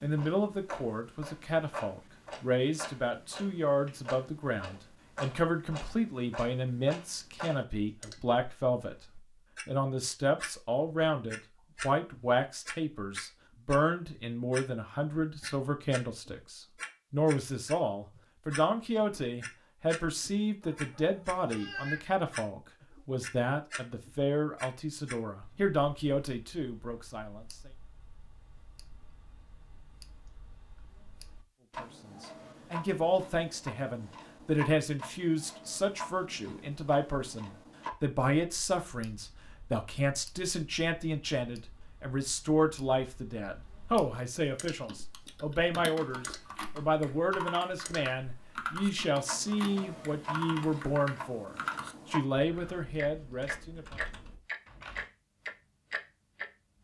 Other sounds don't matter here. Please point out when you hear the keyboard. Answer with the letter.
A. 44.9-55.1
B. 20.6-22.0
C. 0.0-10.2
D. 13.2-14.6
A.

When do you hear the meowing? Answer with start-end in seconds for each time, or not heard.
20.6-22.0.